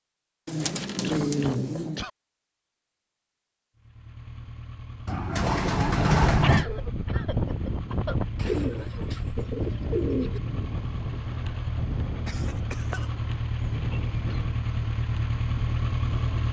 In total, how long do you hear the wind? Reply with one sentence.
The wind can be heard for 10 seconds in total.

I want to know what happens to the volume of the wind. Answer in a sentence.
The volume of the wind goes down.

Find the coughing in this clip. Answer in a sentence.
The coughing can be heard from 1.0 to 2.1 s, from 6.4 to 8.2 s and from 12.2 to 13.2 s.